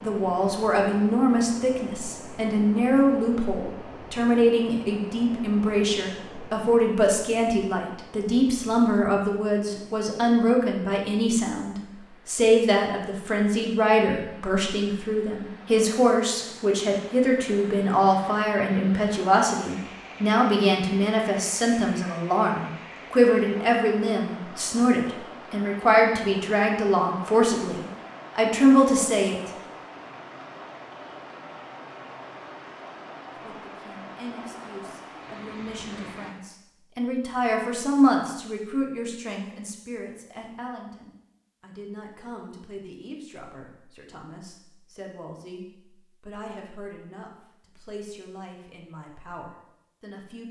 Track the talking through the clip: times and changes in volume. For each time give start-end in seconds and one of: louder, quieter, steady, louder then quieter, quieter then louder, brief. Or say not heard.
0.0-29.4 steady
33.4-50.4 louder then quieter.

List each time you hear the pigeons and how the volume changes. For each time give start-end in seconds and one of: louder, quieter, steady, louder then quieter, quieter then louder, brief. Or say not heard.
not heard.